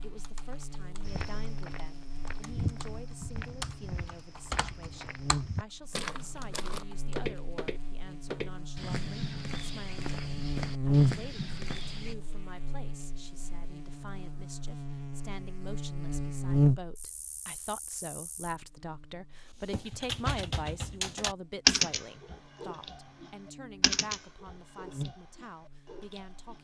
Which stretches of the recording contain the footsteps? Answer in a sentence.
You can hear the footsteps from 1.1 to 12.2 s.